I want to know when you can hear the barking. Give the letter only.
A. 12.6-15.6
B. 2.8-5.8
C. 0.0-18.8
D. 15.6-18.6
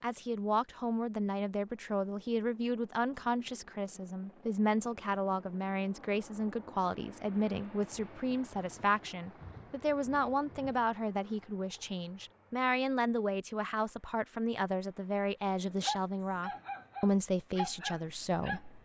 D.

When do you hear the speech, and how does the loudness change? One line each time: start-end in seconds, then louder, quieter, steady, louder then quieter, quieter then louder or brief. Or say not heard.
0.0-18.8 steady.